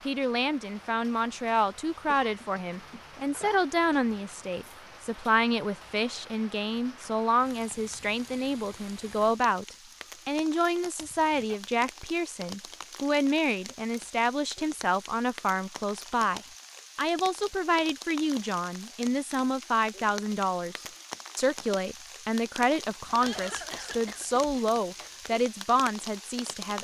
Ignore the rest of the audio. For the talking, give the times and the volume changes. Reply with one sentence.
You can hear the talking from 0.1 to 26.7 s, at a steady volume.